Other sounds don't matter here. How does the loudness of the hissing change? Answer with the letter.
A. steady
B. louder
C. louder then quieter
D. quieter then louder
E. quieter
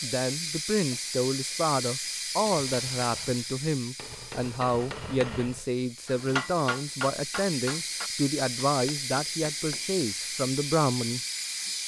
D.